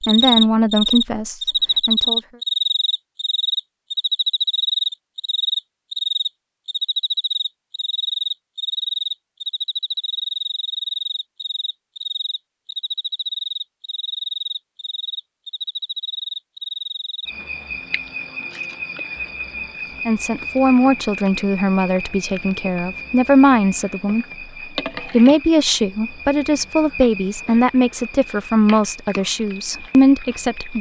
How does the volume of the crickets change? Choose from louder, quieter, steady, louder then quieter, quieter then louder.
quieter.